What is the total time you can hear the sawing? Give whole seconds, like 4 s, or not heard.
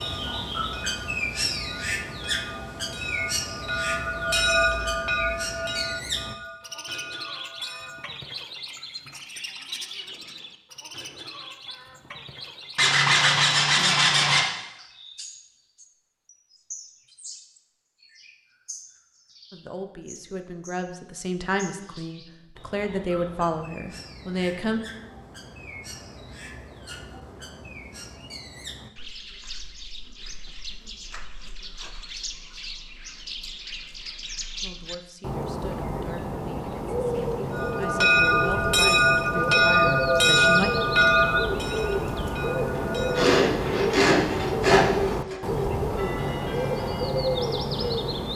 4 s.